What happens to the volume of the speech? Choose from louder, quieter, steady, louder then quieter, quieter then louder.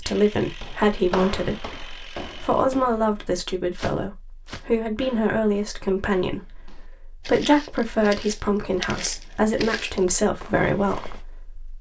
steady.